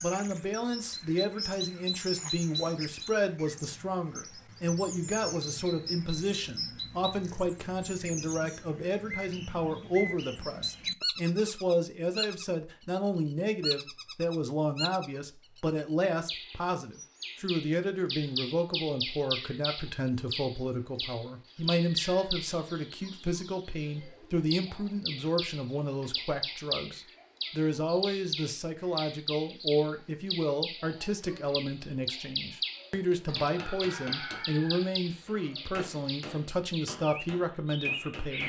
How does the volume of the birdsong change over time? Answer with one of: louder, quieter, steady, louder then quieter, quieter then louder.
steady.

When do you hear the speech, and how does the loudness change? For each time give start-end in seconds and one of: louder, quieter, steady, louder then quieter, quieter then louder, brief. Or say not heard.
0.0-38.4 steady.